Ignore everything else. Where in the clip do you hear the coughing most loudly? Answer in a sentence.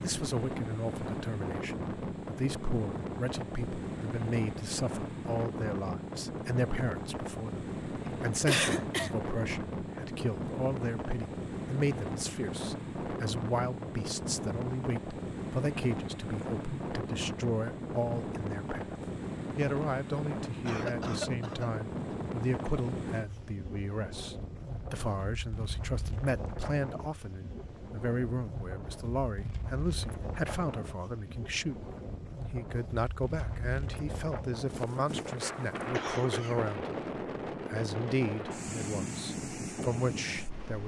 The loudest moment of the coughing is at 9 seconds.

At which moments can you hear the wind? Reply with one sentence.
You can hear the wind from 0.0 to 40.8 s.